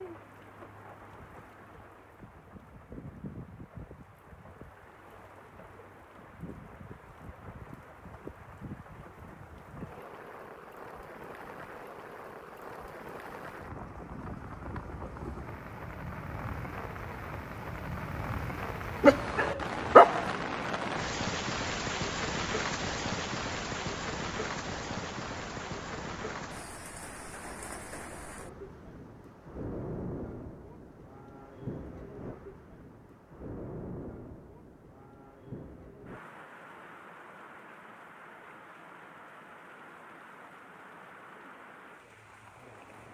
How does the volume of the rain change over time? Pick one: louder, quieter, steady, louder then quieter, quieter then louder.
louder then quieter.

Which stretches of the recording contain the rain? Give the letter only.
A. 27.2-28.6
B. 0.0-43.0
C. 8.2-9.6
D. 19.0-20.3
B.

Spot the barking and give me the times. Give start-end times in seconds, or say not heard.
19.0-20.3.